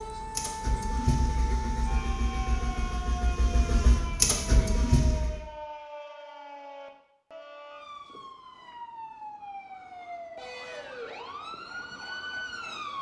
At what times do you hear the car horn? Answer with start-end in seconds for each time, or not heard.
not heard.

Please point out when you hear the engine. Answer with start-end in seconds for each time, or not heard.
0.0-5.4.